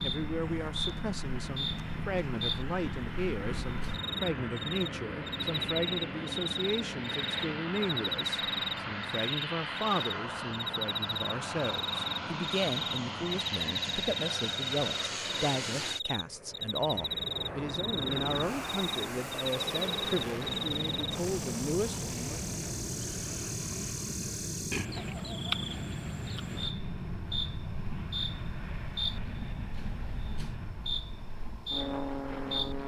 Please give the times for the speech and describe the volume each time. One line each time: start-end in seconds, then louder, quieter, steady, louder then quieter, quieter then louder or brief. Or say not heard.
0.0-22.4 steady.